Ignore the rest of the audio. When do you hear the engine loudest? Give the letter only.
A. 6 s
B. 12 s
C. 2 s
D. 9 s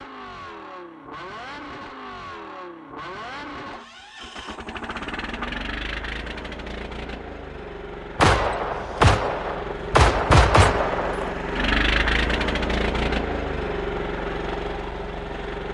B.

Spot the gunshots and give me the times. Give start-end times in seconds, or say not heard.
8.2-11.3.